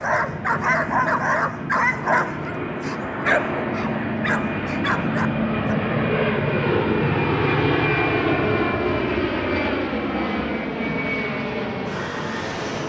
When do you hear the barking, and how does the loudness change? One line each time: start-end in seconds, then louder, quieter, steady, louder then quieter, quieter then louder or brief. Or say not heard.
0.0-5.8 quieter.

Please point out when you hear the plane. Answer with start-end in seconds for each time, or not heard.
0.0-12.8.